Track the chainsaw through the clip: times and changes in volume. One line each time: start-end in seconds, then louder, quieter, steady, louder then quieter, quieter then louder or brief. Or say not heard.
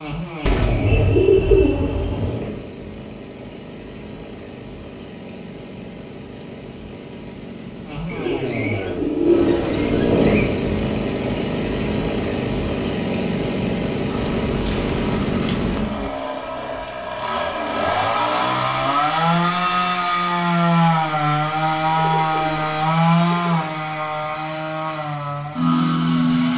0.0-26.5 louder.